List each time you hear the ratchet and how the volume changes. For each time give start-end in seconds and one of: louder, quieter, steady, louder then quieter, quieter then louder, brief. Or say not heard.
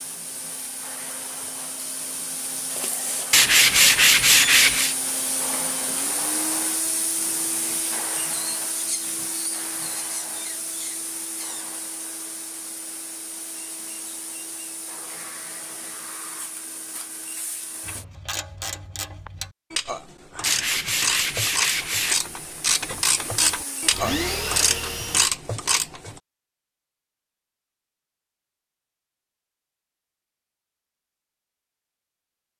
17.9-26.2 louder.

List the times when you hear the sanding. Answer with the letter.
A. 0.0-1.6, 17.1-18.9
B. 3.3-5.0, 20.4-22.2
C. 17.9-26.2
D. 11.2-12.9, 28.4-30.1
B.